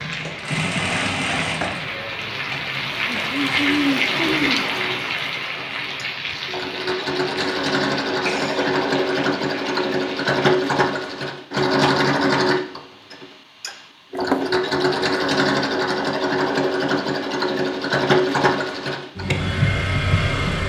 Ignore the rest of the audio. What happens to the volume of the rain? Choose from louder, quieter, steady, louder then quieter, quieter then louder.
louder then quieter.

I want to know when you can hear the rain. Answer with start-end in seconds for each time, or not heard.
0.0-10.3.